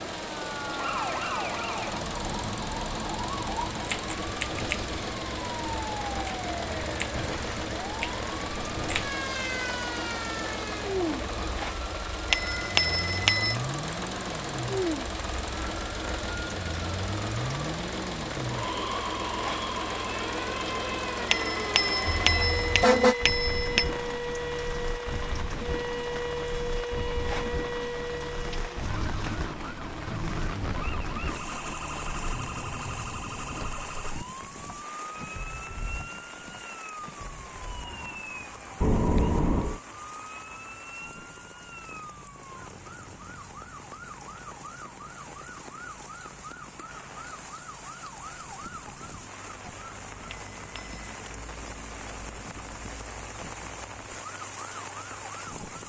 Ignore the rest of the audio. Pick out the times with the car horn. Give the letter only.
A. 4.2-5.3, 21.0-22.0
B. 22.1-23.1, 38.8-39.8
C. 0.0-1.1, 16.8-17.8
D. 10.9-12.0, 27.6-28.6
B.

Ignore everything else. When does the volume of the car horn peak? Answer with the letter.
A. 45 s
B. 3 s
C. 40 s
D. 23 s
D.